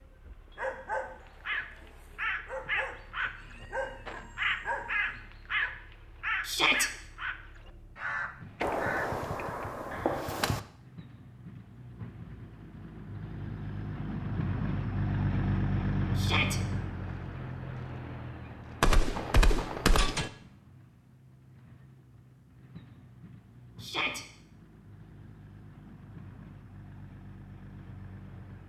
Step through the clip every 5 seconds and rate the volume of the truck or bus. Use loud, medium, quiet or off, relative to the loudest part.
quiet, quiet, medium, loud, quiet, quiet.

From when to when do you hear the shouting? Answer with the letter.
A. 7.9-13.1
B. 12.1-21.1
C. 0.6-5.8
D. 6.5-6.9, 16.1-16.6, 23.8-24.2
D.